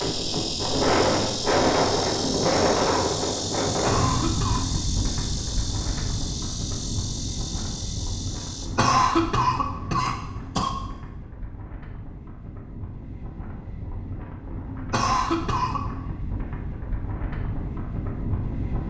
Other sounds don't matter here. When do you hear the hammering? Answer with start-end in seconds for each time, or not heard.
not heard.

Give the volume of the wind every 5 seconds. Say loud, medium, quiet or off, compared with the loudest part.
loud, medium, quiet, medium.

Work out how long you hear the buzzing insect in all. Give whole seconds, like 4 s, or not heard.
9 s.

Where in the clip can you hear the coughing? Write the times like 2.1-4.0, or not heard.
3.9-4.7, 8.8-10.7, 14.9-15.8.